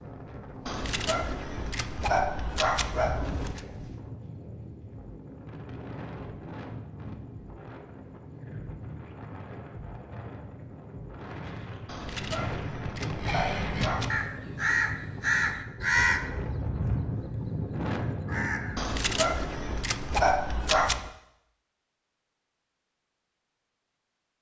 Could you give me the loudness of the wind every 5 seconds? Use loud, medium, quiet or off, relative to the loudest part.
medium, medium, loud, loud, off.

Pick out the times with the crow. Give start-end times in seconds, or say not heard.
13.2-18.9.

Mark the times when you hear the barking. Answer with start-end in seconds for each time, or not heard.
0.7-3.6, 11.8-14.2, 18.8-21.1.